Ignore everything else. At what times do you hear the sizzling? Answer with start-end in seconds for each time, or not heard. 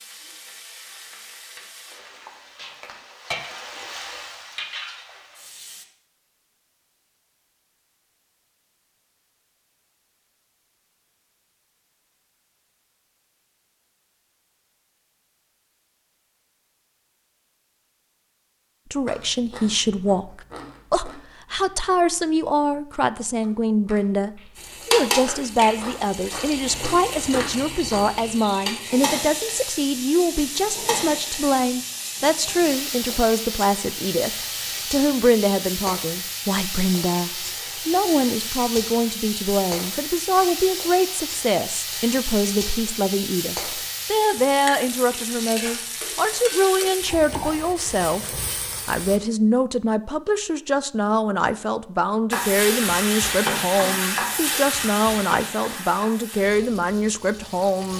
0.0-5.8, 24.6-49.2, 52.3-57.9.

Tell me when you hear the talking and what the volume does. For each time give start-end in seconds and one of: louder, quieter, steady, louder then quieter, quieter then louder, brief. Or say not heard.
18.9-57.9 steady.